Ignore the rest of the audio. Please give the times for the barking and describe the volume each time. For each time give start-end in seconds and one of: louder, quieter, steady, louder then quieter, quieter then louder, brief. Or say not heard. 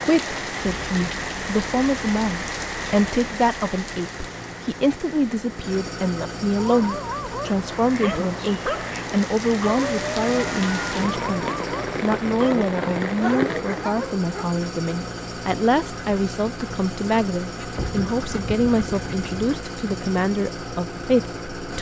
6.5-14.4 steady.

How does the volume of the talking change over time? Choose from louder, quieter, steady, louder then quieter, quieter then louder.
steady.